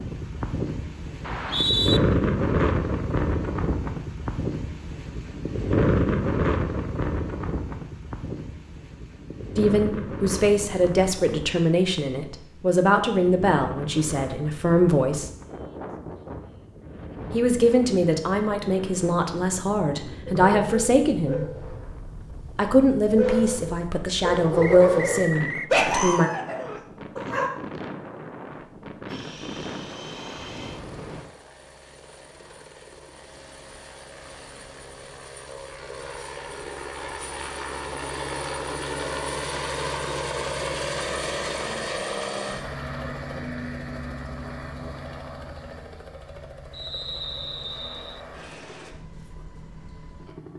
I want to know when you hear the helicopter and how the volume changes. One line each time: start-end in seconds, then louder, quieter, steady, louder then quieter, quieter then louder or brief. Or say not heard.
29.1-50.5 louder then quieter.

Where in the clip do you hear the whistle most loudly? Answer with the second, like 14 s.
2 s.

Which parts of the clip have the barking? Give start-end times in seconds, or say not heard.
20.2-27.5.